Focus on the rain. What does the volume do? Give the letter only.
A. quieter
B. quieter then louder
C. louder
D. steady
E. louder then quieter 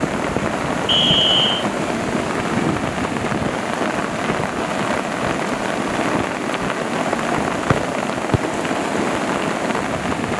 D.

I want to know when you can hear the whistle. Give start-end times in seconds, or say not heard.
0.8-1.6, 7.7-8.4.